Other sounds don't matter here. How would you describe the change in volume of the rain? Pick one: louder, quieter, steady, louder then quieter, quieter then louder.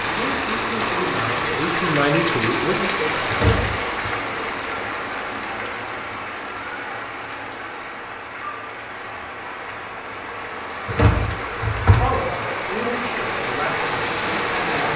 quieter then louder.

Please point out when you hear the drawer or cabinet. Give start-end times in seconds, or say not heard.
3.3-3.9, 10.8-12.0.